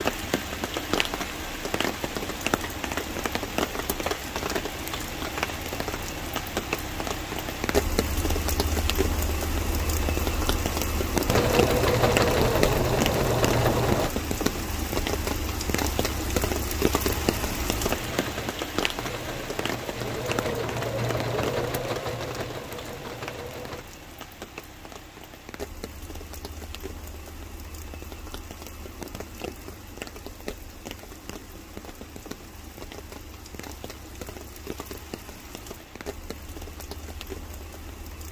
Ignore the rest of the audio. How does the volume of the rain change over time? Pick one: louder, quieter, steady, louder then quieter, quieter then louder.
quieter.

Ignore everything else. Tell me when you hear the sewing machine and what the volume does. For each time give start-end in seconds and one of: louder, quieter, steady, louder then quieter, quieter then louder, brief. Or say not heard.
9.6-14.2 louder
17.2-23.9 louder then quieter.